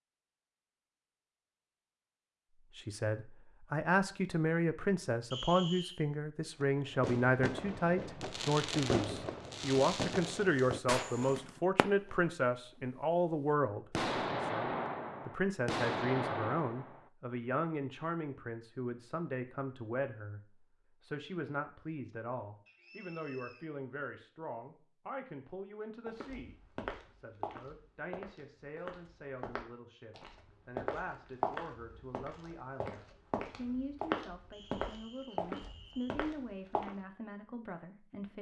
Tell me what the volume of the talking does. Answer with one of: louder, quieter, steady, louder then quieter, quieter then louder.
quieter.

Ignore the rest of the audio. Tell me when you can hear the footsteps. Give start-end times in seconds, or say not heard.
26.1-36.9.